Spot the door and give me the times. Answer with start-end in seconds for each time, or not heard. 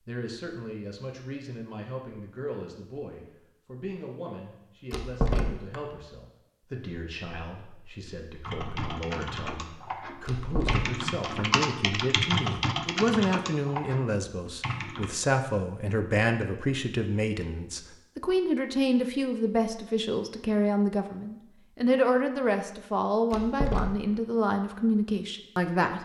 4.9-5.8, 10.2-10.9, 23.3-23.9.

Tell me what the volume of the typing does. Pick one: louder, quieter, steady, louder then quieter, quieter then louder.
louder then quieter.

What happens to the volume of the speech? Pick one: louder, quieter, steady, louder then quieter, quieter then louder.
louder.